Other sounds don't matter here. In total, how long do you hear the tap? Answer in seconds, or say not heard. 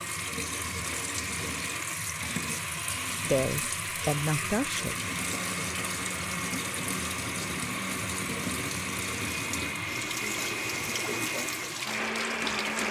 13 s.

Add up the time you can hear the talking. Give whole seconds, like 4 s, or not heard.
2 s.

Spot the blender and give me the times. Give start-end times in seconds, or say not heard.
0.0-12.8.